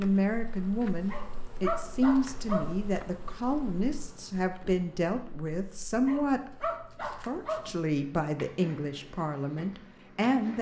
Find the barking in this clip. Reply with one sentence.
You can hear the barking from 1.1 to 2.8 s and from 6.0 to 7.7 s.